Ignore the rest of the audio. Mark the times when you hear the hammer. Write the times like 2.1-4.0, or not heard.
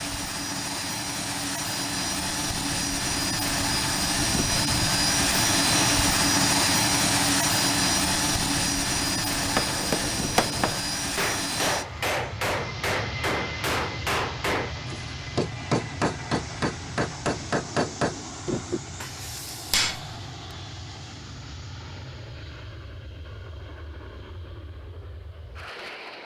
9.3-20.1.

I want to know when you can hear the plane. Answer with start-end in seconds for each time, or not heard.
0.0-26.1.